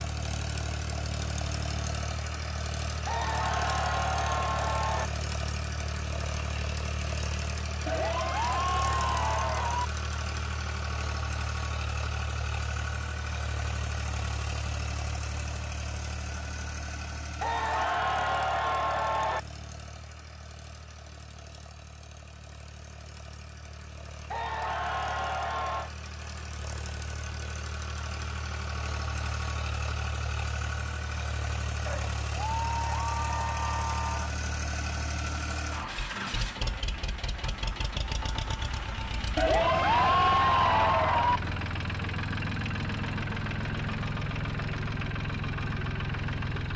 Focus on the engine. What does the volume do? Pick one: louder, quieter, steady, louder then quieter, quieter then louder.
quieter then louder.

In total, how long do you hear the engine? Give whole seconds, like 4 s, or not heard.
47 s.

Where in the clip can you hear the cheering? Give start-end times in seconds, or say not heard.
3.0-5.1, 7.8-9.8, 17.4-19.4, 24.3-25.9, 31.9-34.3, 39.4-41.4.